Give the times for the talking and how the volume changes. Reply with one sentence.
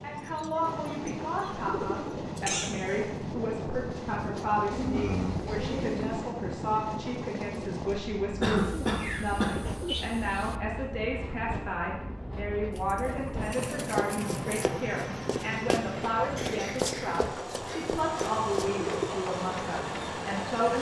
The talking can be heard from 0.0 to 20.7 s, at a steady volume.